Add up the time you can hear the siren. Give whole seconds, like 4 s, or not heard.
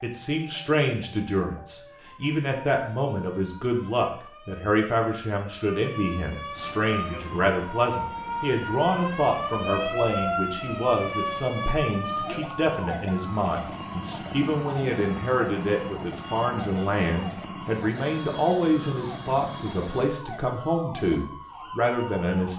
22 s.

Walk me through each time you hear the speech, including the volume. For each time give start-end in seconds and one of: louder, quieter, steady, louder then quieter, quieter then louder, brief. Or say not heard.
0.0-22.5 steady.